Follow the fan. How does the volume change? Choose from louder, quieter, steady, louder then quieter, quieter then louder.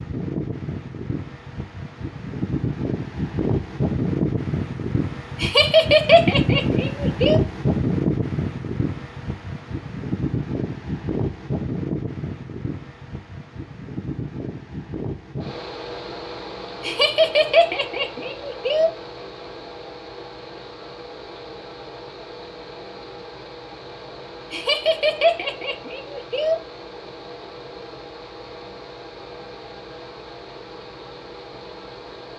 quieter.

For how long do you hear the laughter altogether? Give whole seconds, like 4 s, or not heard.
6 s.